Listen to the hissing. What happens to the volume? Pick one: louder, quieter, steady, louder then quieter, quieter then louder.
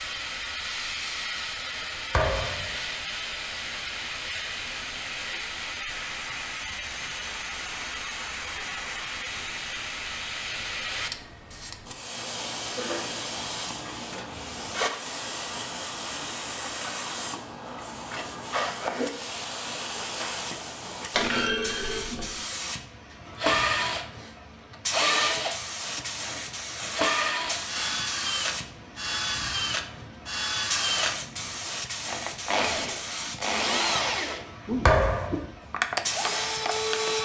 steady.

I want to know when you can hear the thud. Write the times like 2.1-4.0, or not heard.
2.1-2.8, 21.1-22.2, 34.9-35.5.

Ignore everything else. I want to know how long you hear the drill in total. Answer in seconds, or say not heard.
14 s.